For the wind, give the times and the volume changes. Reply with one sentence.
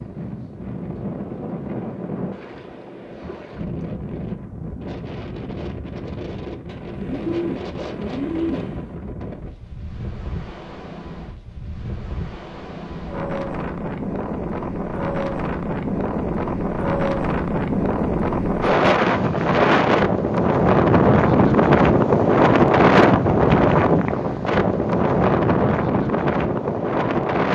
The wind can be heard from 0.0 to 27.4 s, getting louder.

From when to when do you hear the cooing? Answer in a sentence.
The cooing can be heard from 6.7 to 9.0 s.